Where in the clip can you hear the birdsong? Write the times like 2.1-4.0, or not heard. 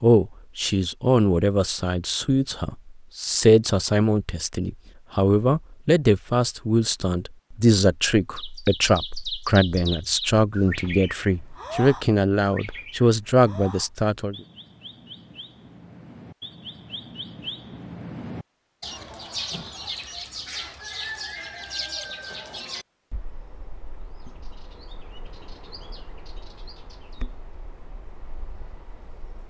8.3-29.4.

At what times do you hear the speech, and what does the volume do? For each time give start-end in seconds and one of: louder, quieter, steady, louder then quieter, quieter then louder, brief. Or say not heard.
0.0-14.3 steady.